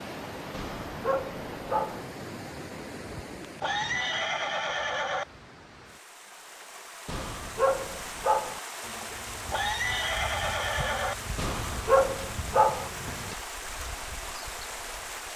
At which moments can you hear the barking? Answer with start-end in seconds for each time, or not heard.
0.5-2.0, 7.0-8.6, 11.3-12.9.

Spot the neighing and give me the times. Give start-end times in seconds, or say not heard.
3.6-5.2, 9.5-11.2.